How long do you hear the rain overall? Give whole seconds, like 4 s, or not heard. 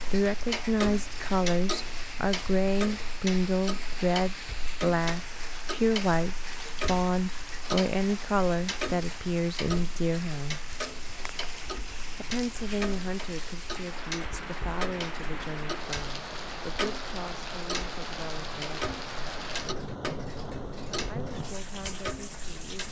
23 s.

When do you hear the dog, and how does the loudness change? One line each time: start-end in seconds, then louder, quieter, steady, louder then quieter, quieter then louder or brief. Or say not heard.
not heard.